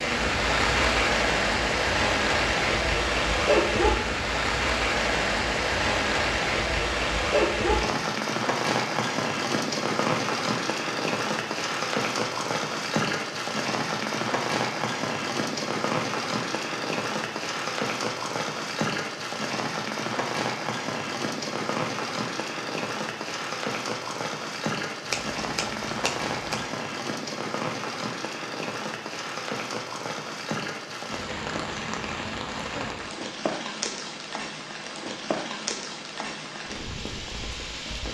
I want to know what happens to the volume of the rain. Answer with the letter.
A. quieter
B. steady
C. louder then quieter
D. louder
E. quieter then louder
A.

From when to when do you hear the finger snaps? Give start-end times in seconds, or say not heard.
25.1-26.7.